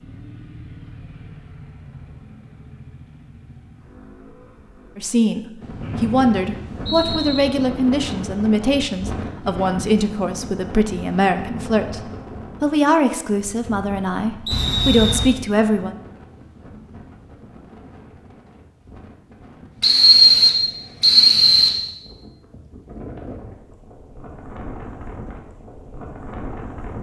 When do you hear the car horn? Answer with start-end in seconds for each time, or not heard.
14.5-15.3.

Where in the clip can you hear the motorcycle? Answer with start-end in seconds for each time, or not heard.
0.0-5.2.